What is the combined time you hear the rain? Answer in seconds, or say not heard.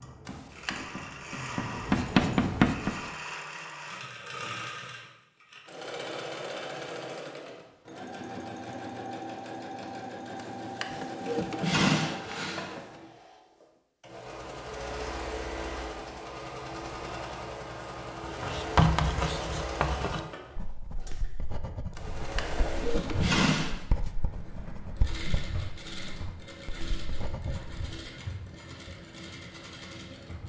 not heard.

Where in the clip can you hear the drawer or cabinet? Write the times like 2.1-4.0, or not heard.
0.2-0.8, 10.3-12.8, 21.9-23.8.